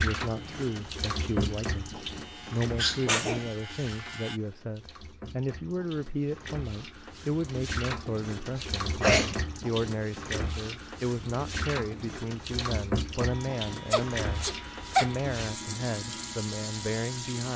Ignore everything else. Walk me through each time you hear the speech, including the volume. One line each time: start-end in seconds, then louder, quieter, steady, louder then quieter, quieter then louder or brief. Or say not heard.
0.0-17.5 steady.